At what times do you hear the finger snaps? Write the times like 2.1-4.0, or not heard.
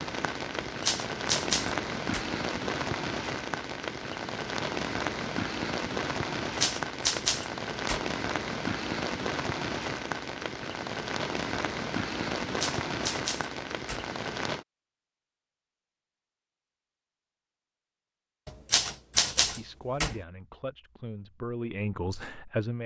not heard.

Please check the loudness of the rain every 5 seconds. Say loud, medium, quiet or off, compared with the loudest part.
loud, loud, loud, off, off.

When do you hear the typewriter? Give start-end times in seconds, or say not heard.
0.6-2.2, 6.5-8.1, 12.3-14.1, 18.4-20.1.